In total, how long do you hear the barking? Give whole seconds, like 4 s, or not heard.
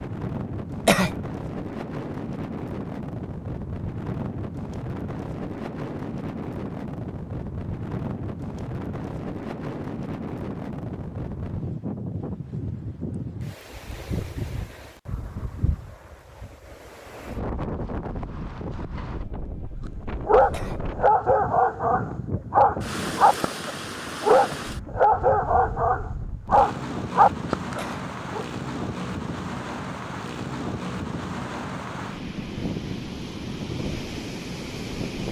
8 s.